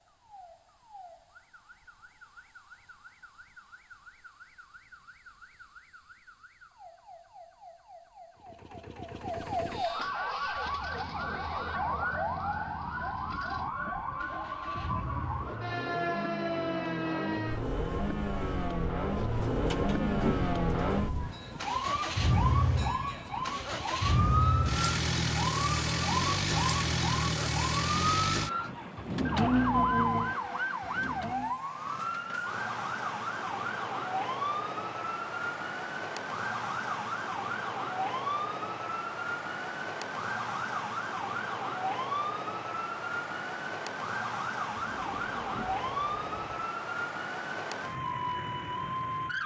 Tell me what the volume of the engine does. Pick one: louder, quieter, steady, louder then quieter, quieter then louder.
louder.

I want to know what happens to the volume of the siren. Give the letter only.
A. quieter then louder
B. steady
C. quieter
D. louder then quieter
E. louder
E.